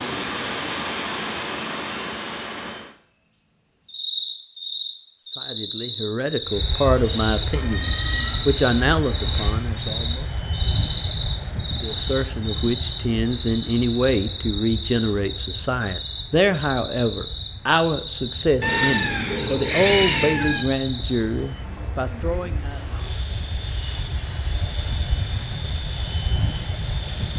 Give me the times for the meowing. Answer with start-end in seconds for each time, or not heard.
7.5-9.6, 18.6-20.6.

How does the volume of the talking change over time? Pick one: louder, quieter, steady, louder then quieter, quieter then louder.
steady.